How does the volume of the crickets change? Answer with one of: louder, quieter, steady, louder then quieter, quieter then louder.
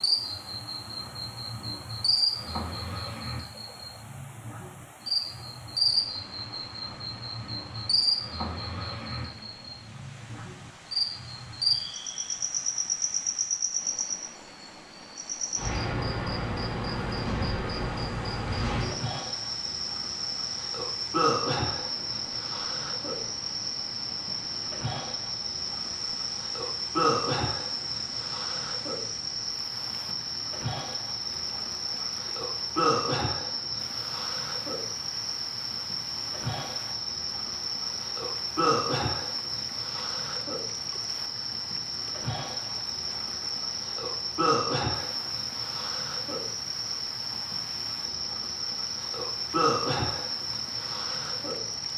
steady.